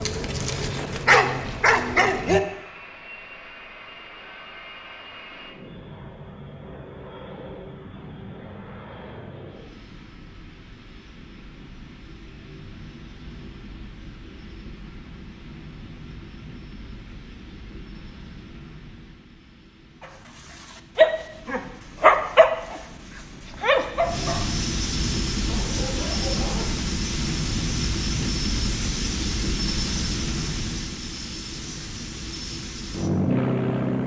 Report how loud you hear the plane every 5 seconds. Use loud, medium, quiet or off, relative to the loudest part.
quiet, quiet, quiet, quiet, medium, loud, loud.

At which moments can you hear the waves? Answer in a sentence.
The waves can't be heard in this clip.